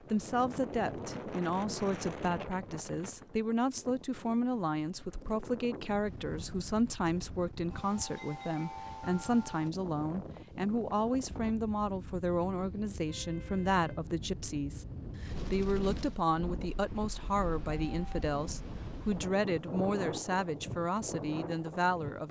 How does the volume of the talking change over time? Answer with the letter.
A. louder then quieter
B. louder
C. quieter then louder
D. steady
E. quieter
D.